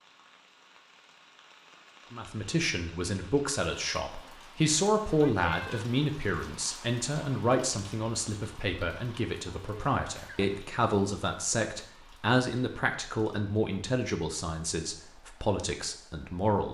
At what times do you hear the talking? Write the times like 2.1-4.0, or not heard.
2.1-16.6.